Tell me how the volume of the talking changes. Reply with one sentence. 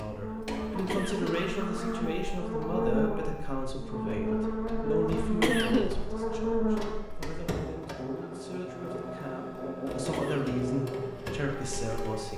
The volume of the talking goes down, then up.